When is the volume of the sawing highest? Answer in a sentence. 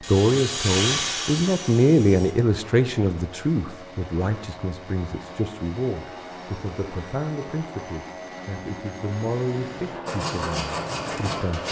The loudest moment of the sawing is at 1 second.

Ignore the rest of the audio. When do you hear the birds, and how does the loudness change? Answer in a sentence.
You can't hear the birds here.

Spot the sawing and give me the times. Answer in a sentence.
The sawing can be heard from 0.0 to 2.4 s and from 10.1 to 11.6 s.